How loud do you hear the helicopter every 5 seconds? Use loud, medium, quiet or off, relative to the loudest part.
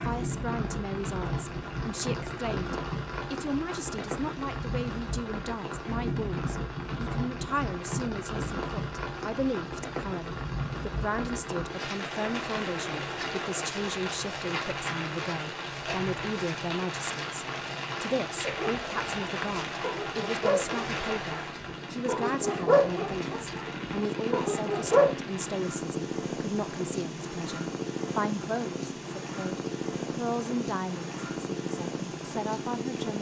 off, off, medium, medium, loud, loud, loud.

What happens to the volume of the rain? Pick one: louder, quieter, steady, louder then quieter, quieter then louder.
quieter.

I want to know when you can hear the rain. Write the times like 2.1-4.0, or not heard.
0.0-33.1.